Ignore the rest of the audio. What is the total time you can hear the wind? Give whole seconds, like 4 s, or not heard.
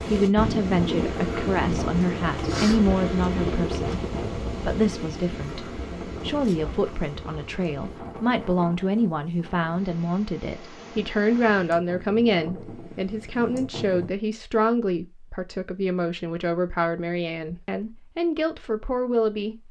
14 s.